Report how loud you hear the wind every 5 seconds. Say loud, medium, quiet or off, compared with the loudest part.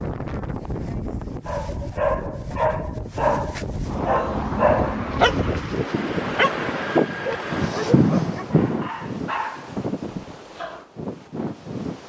medium, loud, medium.